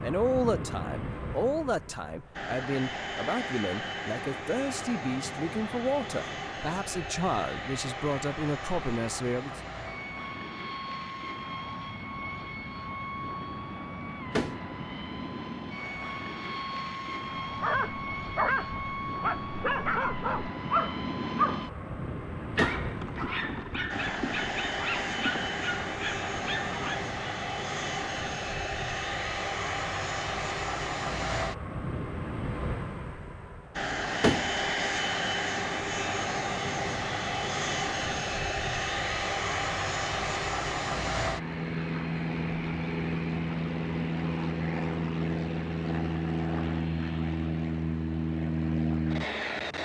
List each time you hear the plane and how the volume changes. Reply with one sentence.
The plane can be heard from 0.0 to 49.8 s, getting louder.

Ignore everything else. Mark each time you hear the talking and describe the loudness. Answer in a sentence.
You can hear the talking from 0.0 to 9.6 s, at a steady volume.